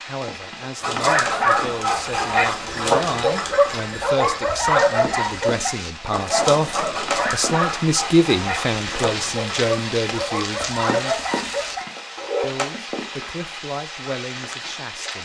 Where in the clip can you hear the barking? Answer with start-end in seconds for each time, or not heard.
0.8-12.5.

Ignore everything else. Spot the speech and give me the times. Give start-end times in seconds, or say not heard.
0.1-11.2, 12.4-15.2.